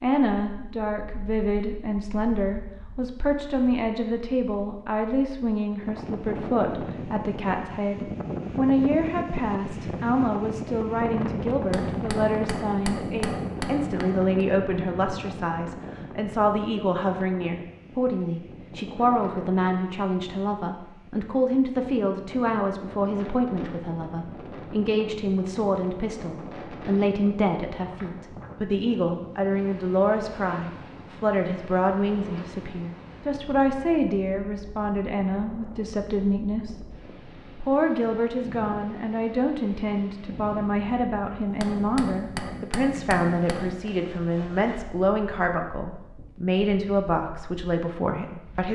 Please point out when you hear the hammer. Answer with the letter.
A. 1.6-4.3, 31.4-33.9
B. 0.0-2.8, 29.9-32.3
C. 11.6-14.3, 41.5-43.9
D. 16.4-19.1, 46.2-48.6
C.